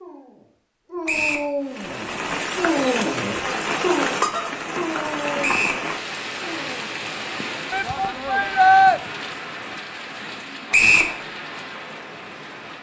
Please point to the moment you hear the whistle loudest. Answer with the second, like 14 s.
11 s.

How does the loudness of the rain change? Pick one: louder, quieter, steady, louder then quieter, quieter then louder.
quieter.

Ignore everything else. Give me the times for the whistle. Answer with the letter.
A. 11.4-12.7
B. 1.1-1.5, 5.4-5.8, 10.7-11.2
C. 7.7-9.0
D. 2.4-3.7
B.